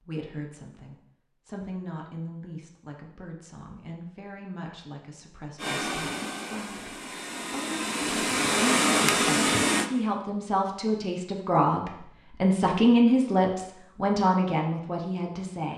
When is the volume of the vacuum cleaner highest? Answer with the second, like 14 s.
9 s.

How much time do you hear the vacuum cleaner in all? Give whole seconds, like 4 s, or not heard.
4 s.